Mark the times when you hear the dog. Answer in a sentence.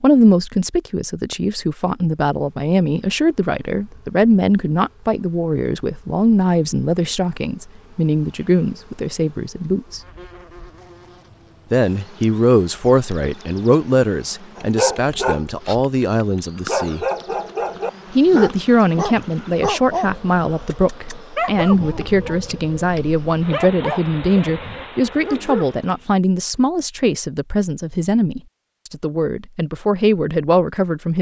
The dog can be heard from 14.6 to 26.1 s.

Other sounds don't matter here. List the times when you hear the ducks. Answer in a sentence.
You can't hear the ducks here.